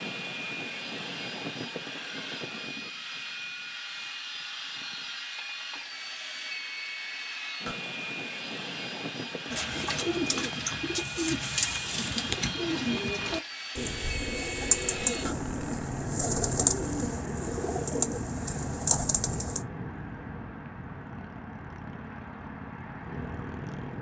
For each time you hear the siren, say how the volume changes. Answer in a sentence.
You can't hear the siren here.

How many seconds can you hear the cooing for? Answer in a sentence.
The cooing can be heard for 10 seconds in total.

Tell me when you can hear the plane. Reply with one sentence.
You can hear the plane from 0.0 to 23.9 s.